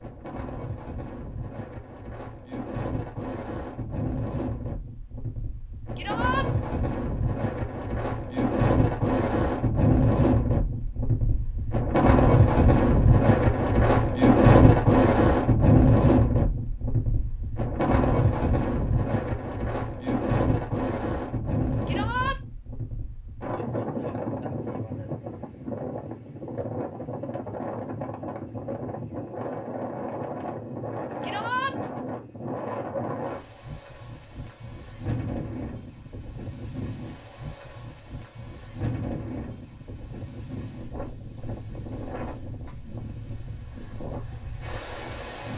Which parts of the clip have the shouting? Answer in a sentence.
You can hear the shouting from 6.0 to 6.5 s, from 21.9 to 22.4 s and from 31.2 to 31.8 s.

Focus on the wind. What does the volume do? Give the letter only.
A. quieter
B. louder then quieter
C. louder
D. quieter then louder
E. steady
B.